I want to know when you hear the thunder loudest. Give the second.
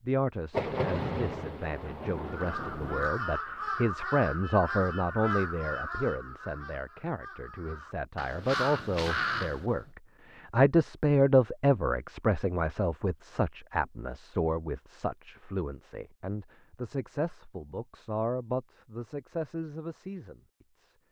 1 s.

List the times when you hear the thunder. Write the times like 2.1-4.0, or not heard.
0.5-3.1.